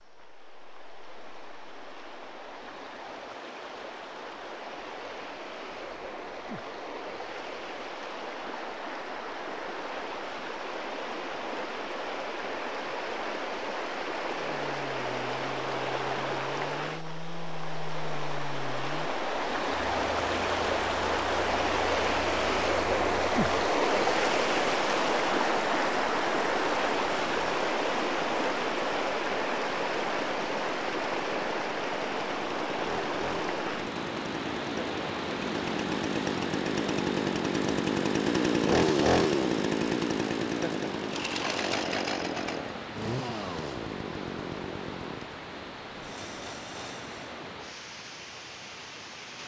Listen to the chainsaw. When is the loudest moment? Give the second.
39 s.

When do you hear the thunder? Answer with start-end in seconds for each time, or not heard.
not heard.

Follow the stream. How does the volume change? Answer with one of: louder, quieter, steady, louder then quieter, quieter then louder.
louder then quieter.